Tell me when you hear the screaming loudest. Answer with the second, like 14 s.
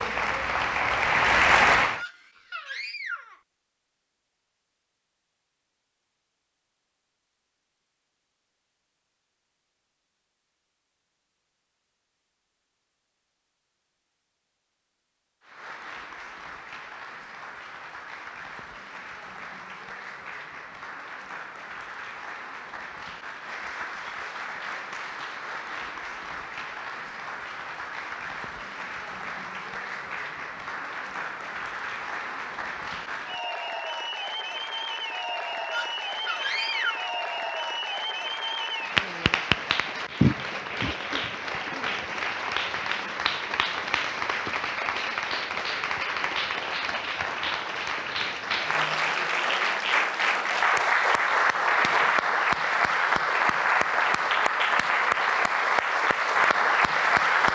37 s.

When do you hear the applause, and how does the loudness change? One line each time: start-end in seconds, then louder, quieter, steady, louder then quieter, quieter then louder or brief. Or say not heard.
0.0-2.0 brief
15.4-57.5 louder.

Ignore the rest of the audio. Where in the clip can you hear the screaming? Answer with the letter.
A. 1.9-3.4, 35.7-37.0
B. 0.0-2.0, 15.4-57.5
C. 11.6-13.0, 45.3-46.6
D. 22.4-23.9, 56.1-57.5
A.